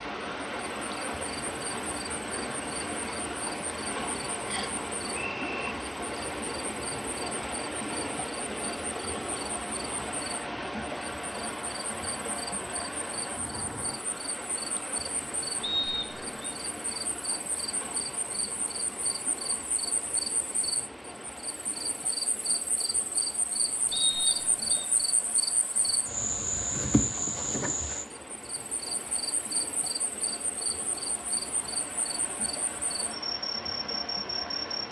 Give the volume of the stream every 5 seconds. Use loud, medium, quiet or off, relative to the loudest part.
loud, loud, loud, medium, medium, medium, medium.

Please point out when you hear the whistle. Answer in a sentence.
The whistle can be heard from 4.5 to 5.6 s, from 15.6 to 16.4 s and from 23.9 to 24.9 s.